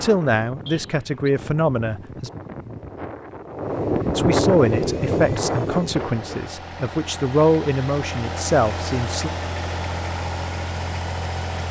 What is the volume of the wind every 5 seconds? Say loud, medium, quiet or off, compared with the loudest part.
loud, loud, off.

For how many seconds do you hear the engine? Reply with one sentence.
You can hear the engine for 7 seconds altogether.